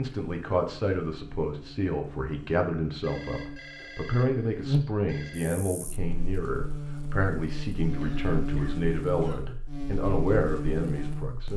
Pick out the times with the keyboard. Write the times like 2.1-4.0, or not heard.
not heard.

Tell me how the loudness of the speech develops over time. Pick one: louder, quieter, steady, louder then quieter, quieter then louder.
steady.